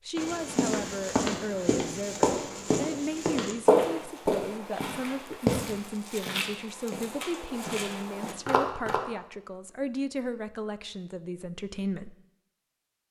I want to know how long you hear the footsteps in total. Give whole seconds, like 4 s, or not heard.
9 s.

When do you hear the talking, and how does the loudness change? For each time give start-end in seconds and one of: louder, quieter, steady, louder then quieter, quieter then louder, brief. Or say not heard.
0.1-12.2 steady.